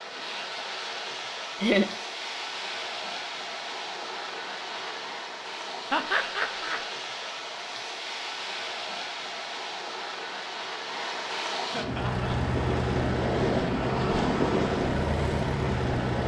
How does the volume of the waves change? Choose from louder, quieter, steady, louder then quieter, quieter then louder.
louder.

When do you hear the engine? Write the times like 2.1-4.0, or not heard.
11.8-16.2.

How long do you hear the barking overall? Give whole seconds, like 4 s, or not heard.
not heard.